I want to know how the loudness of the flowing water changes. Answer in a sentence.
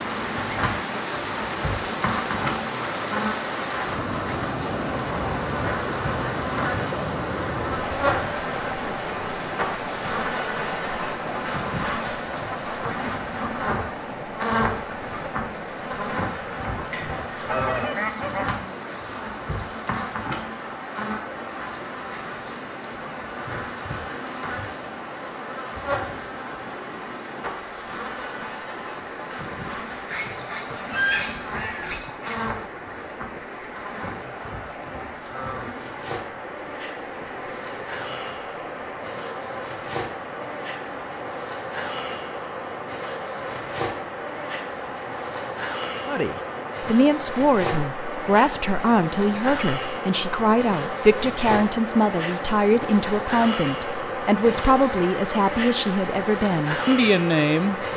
The loudness of the flowing water goes down.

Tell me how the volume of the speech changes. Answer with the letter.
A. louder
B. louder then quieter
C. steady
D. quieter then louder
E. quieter
C.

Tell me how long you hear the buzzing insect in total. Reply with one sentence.
You can hear the buzzing insect for 58 seconds altogether.